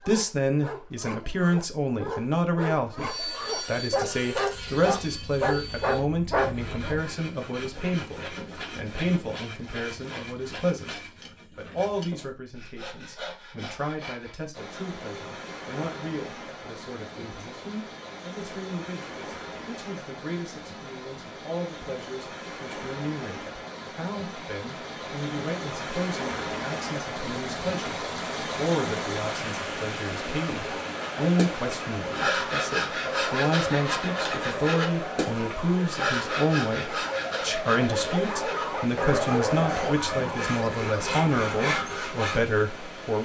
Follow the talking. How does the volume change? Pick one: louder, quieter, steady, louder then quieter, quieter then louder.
quieter then louder.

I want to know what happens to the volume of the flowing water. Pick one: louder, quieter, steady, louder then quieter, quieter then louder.
louder then quieter.